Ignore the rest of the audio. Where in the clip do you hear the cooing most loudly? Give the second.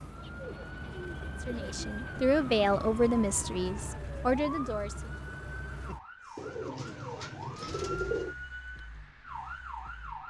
8 s.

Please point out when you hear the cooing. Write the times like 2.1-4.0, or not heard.
0.1-1.8, 6.3-8.3.